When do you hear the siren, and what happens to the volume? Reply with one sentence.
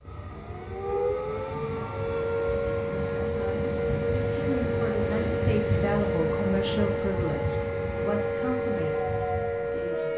You can hear the siren from 0.1 to 10.1 s, at a steady volume.